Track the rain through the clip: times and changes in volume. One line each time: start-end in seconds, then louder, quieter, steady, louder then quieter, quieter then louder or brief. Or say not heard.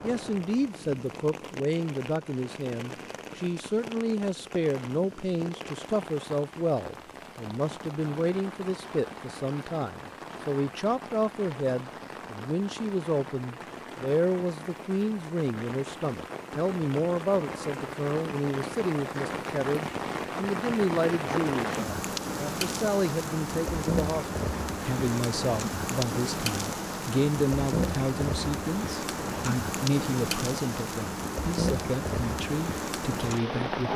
0.0-33.9 louder.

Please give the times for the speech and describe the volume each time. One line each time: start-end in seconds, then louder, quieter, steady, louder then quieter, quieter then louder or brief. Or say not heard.
0.0-33.9 steady.